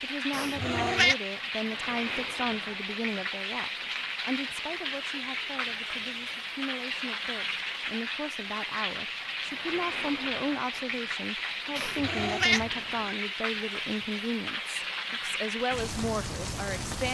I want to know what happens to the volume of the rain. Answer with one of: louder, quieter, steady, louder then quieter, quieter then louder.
steady.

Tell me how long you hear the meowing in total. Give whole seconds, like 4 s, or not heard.
2 s.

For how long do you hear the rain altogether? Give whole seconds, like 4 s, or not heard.
17 s.